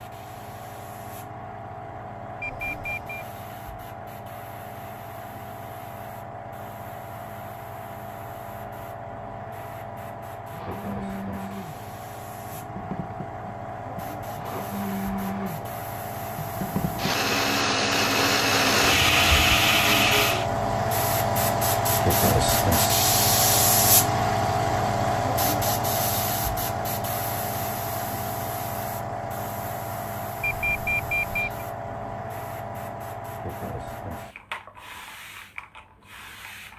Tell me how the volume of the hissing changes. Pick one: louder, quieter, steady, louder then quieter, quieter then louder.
louder then quieter.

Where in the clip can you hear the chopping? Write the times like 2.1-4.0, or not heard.
not heard.